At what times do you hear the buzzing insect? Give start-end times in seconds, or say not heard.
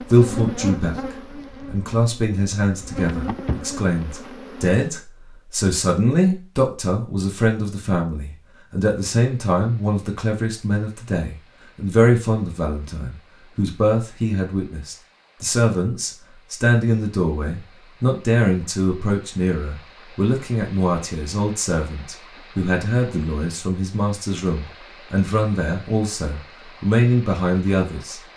0.0-4.8.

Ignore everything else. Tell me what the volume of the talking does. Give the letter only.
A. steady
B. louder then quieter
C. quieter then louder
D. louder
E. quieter
A.